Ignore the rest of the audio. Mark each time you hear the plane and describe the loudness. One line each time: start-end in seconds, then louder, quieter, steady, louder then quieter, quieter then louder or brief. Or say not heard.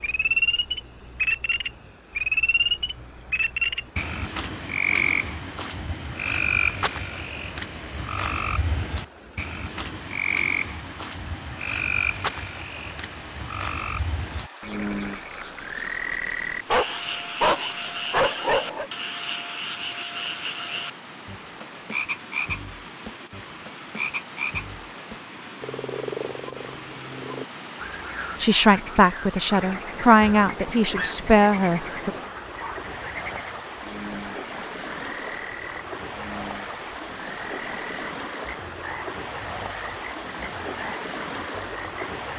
not heard.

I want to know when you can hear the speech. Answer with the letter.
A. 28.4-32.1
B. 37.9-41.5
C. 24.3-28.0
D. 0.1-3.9
A.